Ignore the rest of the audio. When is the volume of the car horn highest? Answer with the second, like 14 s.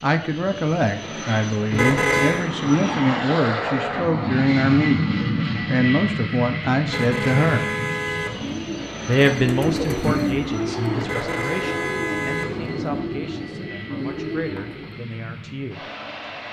2 s.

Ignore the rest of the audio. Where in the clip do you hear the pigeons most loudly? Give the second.
10 s.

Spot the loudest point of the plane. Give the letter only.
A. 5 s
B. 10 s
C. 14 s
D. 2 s
A.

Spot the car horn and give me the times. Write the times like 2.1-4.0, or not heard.
1.7-2.5, 6.8-8.8, 11.0-13.1.